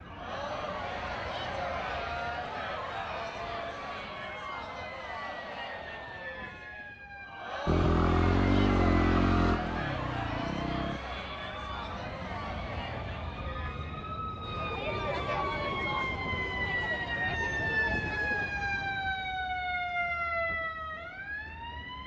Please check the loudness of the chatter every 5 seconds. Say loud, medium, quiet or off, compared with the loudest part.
loud, loud, loud, loud, off.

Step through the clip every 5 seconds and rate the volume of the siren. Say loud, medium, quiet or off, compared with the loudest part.
quiet, quiet, medium, loud, loud.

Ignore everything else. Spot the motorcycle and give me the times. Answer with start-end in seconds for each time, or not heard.
7.7-11.0.